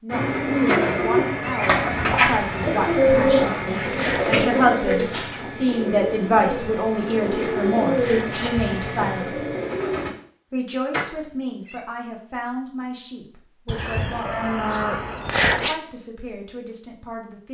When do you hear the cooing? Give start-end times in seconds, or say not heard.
0.1-10.1.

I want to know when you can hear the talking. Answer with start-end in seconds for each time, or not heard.
0.0-9.4, 10.5-14.5, 15.5-17.4.